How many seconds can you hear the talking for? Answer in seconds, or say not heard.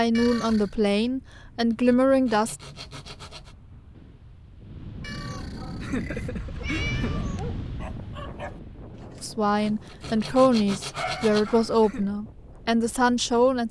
7 s.